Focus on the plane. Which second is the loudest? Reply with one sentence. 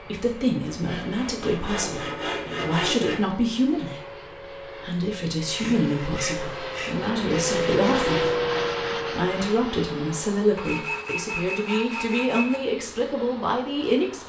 The loudest moment of the plane is at 8 seconds.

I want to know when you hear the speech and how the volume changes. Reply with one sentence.
You can hear the speech from 0.0 to 14.2 s, at a steady volume.